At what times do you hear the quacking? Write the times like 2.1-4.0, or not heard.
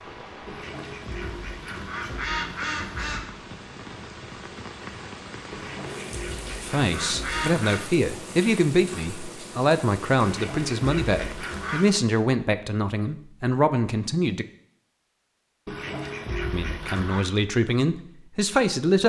0.5-3.2, 5.5-7.8, 10.2-11.8, 15.7-17.2.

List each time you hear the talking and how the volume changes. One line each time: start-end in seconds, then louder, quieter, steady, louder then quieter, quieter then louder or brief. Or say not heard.
6.6-14.4 steady
16.5-19.0 brief.